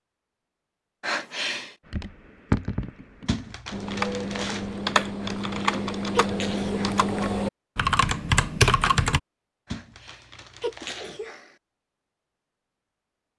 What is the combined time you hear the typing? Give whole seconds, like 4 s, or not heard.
7 s.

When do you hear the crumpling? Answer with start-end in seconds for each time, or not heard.
3.2-4.8, 9.7-11.2.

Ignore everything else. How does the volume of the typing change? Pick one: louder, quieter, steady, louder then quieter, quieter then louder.
louder.